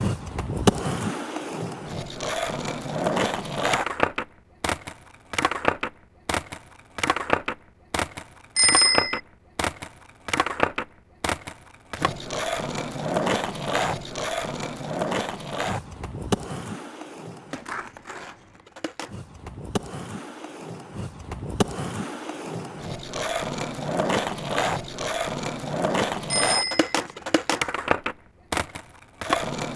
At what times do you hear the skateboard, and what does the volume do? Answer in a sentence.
The skateboard can be heard from 0.0 to 29.7 s, getting quieter then louder.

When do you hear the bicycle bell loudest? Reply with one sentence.
The loudest moment of the bicycle bell is at 9 seconds.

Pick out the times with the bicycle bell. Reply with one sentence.
You can hear the bicycle bell from 8.6 to 9.2 s and from 26.3 to 26.9 s.